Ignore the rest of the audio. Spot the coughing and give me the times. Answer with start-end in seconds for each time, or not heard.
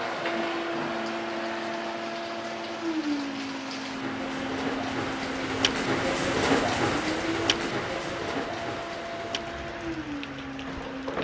not heard.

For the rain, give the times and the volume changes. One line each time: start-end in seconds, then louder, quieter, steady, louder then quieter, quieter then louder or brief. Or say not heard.
0.0-11.2 louder then quieter.